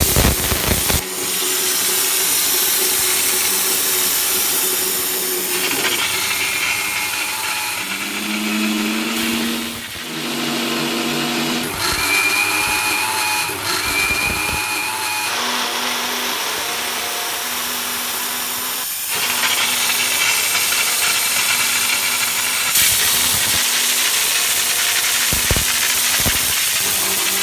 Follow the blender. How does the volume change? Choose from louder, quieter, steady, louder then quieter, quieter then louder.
louder then quieter.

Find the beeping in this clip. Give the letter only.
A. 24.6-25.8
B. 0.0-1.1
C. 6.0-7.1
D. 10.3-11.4
C.